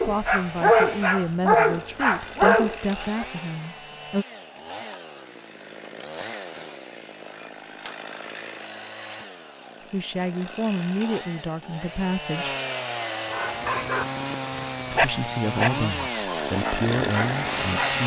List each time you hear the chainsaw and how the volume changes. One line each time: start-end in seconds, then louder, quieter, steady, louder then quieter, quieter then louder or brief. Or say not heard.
0.0-18.0 louder.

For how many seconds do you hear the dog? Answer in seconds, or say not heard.
8 s.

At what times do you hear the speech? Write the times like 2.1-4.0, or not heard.
0.0-4.2, 9.9-12.6, 14.9-18.0.